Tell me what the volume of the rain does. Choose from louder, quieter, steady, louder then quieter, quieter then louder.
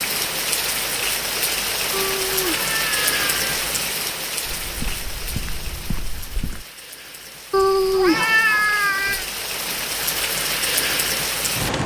quieter then louder.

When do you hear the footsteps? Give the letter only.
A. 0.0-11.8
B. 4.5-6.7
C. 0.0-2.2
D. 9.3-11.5
B.